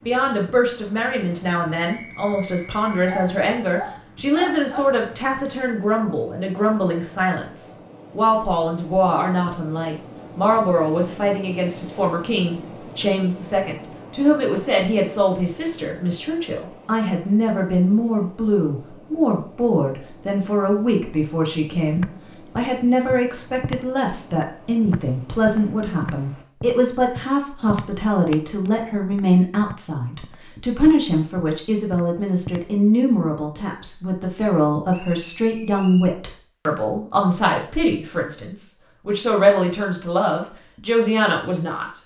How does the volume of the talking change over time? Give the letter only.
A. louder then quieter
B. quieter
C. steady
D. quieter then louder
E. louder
C.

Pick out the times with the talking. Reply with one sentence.
The talking can be heard from 0.1 to 42.0 s.